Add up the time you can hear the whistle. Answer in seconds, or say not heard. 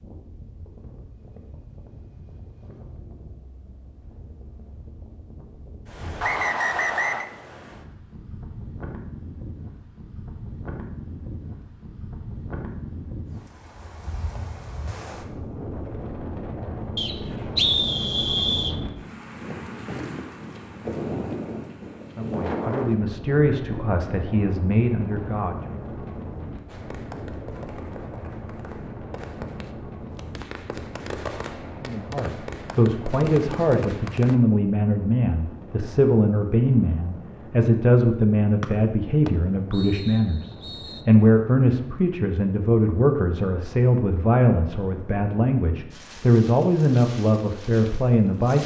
5 s.